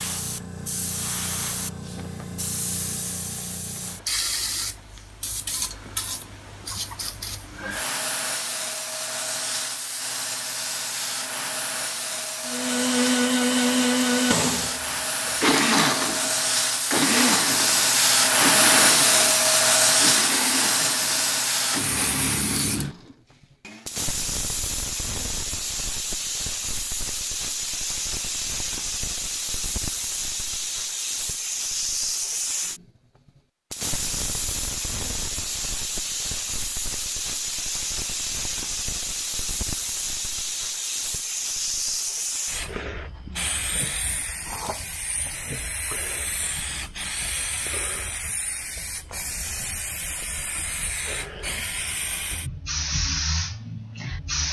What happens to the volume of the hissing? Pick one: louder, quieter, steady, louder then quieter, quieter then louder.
louder then quieter.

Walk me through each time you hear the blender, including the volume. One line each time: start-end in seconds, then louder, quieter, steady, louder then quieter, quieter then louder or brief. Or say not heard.
12.4-23.9 quieter.